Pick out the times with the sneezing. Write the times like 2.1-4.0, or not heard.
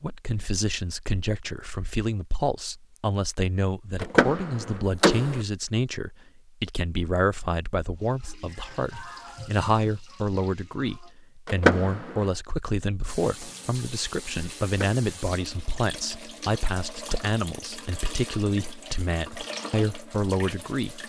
not heard.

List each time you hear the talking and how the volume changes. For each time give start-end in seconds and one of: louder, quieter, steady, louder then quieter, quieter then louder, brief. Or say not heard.
0.0-21.0 steady.